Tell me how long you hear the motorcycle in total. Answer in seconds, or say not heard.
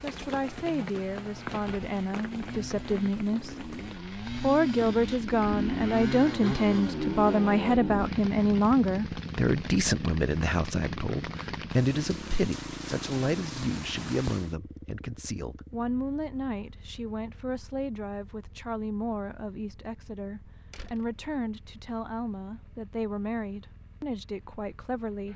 25 s.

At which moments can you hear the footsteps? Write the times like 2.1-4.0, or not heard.
not heard.